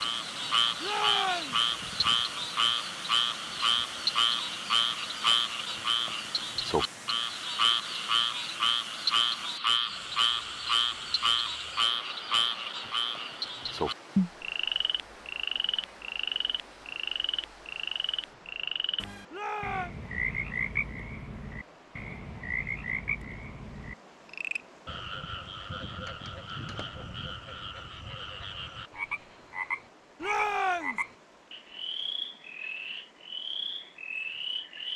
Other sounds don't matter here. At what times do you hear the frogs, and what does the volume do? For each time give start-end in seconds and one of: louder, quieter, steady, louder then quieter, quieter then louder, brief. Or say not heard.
0.0-34.9 quieter.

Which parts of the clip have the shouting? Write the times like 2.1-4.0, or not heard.
0.8-1.6, 19.3-19.9, 30.2-31.1.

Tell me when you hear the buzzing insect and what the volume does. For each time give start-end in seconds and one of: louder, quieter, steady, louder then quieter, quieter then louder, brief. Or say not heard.
not heard.